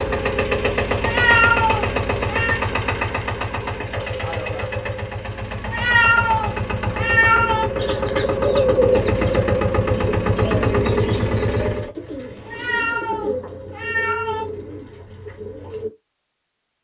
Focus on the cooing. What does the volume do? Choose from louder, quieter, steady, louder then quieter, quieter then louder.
quieter.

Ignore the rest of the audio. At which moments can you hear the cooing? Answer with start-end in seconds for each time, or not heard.
7.8-15.9.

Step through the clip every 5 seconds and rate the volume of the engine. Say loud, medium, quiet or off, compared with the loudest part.
loud, loud, loud, off.